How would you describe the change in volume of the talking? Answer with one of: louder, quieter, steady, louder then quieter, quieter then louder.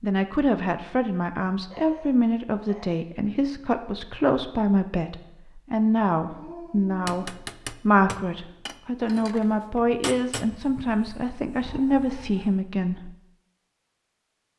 steady.